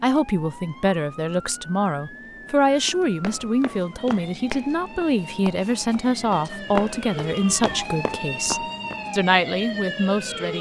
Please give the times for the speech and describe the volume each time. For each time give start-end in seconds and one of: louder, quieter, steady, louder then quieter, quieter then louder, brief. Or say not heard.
0.0-10.5 steady.